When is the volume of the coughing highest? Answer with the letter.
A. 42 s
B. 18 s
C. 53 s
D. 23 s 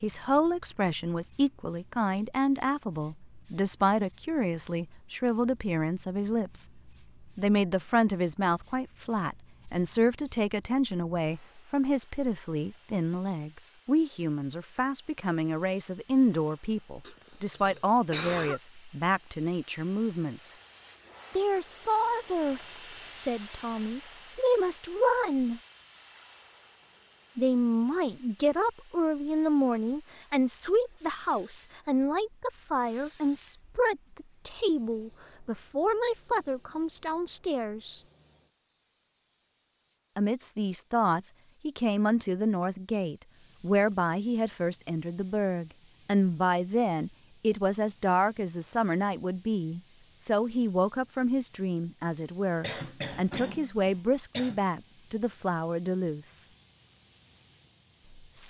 B.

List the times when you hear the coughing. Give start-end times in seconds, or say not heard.
17.0-18.6, 52.0-54.6.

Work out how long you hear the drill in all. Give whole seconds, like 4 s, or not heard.
not heard.